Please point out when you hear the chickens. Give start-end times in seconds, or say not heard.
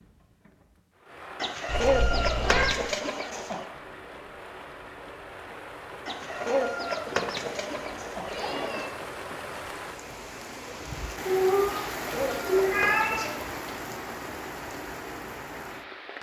1.4-3.6, 6.0-8.9, 11.9-13.7.